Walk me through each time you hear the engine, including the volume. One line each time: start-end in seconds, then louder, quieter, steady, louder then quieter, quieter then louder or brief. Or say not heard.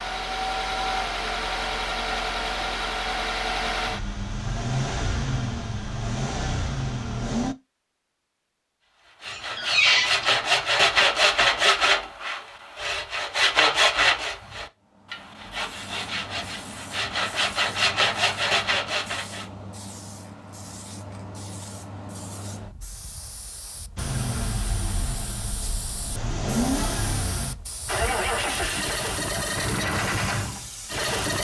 0.0-7.5 steady
23.9-31.3 louder.